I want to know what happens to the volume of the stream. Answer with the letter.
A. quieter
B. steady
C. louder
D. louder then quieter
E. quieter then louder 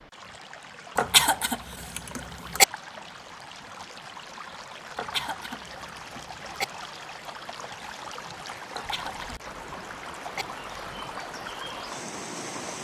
C.